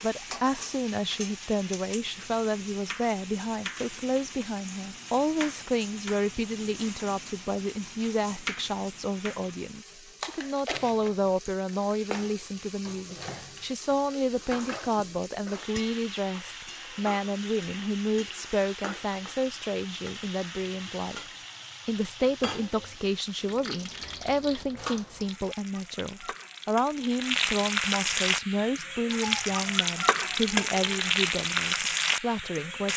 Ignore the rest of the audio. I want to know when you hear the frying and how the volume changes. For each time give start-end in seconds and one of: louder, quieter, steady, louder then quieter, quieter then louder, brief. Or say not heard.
0.0-32.9 louder.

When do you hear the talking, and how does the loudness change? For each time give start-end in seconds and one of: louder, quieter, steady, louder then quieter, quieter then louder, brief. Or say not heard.
0.0-21.1 steady
21.9-32.9 steady.